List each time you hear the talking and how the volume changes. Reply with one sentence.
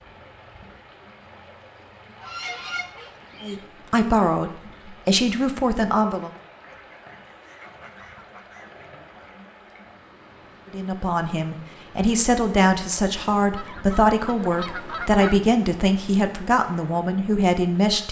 The talking can be heard briefly from 3.4 to 6.3 s; and from 10.7 to 18.0 s, at a steady volume.